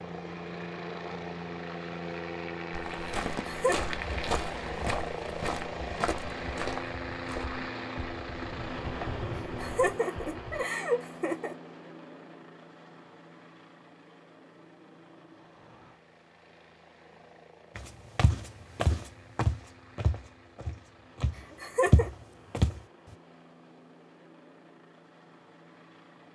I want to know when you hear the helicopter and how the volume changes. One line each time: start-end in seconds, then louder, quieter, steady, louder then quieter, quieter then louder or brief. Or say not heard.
0.0-26.3 quieter.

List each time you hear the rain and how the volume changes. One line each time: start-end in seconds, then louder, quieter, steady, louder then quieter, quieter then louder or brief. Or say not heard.
not heard.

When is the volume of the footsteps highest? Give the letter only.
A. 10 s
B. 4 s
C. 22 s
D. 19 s
C.